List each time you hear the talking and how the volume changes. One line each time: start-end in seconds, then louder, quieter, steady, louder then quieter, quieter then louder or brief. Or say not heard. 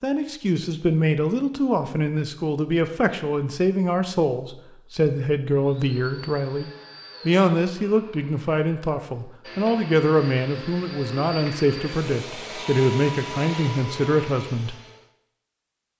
0.0-14.8 steady.